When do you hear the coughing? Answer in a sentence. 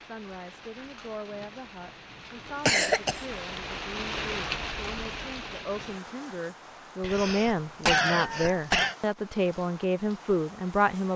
You can hear the coughing from 2.6 to 3.2 s and from 7.0 to 8.9 s.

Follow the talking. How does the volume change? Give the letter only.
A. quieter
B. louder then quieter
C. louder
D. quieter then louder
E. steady
C.